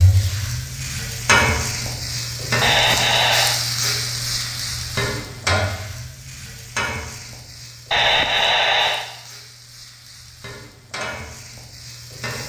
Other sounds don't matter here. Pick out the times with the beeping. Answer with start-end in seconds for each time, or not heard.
2.6-3.6, 7.9-9.1.